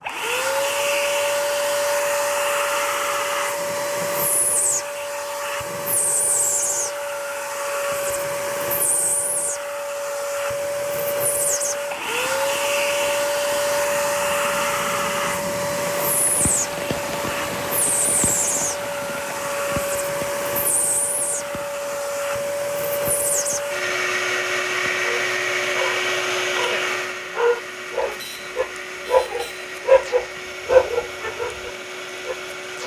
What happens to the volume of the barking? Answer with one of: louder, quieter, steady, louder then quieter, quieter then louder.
louder then quieter.